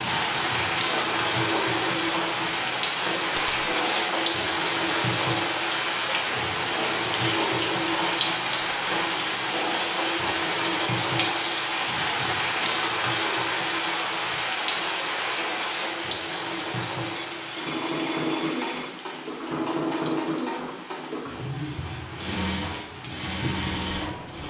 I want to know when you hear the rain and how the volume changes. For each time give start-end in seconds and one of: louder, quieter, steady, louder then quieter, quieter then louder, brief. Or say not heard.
0.0-24.4 quieter.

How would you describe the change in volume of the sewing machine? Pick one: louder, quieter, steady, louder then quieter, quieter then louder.
steady.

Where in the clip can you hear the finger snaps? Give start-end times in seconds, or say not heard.
not heard.